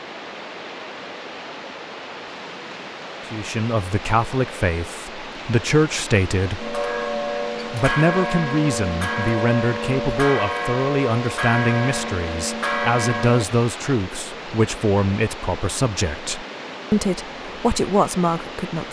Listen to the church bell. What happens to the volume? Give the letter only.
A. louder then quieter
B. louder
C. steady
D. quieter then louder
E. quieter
C.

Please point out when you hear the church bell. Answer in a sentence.
The church bell can be heard from 6.6 to 13.4 s.